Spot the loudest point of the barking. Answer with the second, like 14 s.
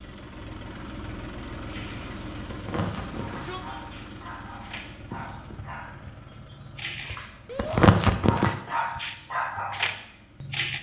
8 s.